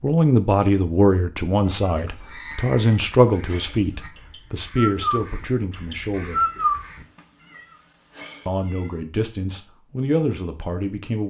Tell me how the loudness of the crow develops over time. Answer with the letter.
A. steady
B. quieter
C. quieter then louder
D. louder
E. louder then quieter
C.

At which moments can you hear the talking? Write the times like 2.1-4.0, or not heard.
0.0-6.5, 8.4-11.2.